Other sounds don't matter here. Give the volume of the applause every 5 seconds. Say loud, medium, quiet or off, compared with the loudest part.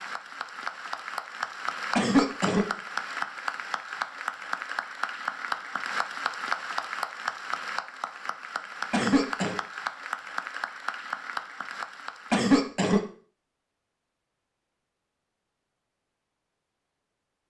loud, loud, loud, off.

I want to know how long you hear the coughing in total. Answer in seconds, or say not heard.
2 s.